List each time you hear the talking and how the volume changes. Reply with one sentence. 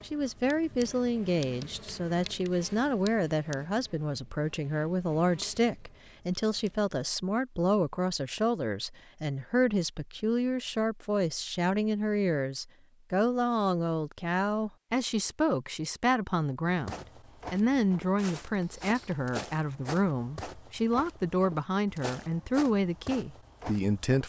You can hear the talking from 0.0 to 24.2 s, at a steady volume.